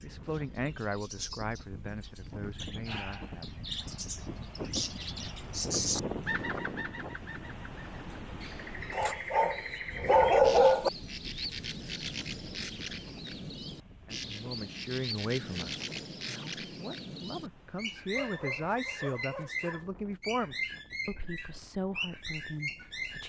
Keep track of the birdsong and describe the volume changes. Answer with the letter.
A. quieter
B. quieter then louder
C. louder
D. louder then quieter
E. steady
E.